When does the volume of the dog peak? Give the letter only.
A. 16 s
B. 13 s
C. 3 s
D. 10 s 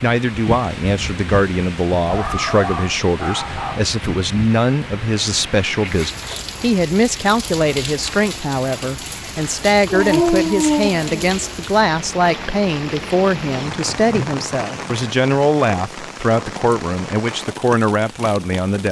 D.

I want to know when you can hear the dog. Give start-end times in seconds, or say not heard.
2.0-3.9, 9.9-11.6.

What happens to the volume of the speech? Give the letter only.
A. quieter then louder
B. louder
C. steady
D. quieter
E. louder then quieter
C.